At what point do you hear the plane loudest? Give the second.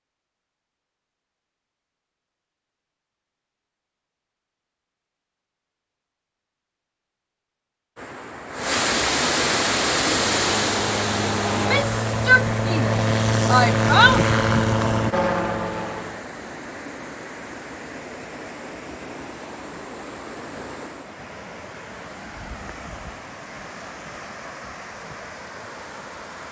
14 s.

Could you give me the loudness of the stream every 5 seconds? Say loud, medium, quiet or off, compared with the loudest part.
off, loud, loud, quiet, quiet, quiet.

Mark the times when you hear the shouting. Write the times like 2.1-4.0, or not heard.
11.6-14.2.